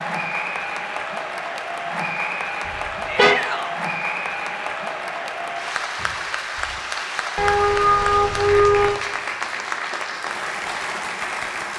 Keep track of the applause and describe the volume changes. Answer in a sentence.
The loudness of the applause stays about the same.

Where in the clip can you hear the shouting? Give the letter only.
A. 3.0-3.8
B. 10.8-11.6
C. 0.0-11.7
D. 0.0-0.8
A.